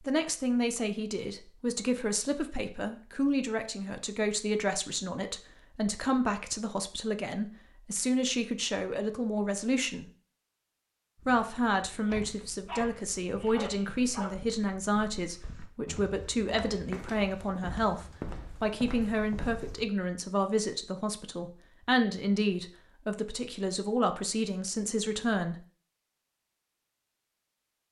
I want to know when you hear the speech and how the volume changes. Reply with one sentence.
The speech can be heard from 0.0 to 10.1 s, at a steady volume; and from 11.2 to 25.6 s, at a steady volume.